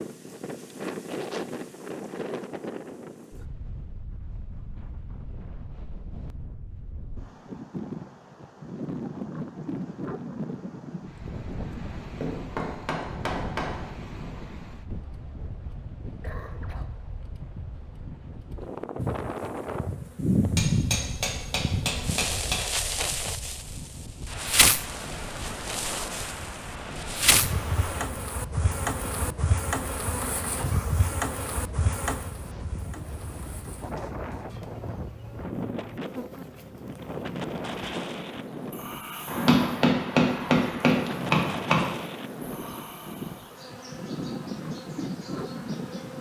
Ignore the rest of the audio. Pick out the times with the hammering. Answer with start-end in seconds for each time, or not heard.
12.2-13.8, 20.6-22.6, 39.2-41.9.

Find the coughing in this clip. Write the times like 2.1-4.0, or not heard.
15.3-16.9.